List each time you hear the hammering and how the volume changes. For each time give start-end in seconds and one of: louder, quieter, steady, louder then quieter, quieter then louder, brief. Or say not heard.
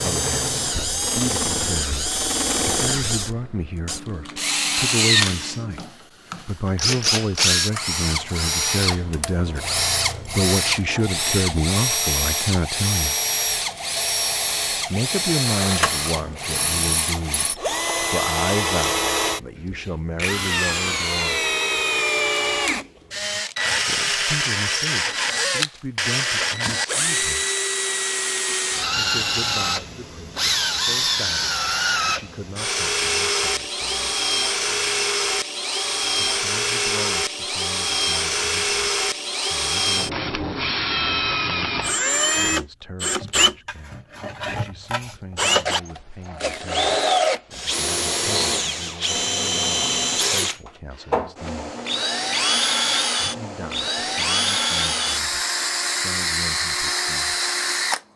not heard.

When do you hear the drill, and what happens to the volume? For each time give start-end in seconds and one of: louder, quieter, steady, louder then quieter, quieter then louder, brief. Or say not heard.
0.0-58.0 steady.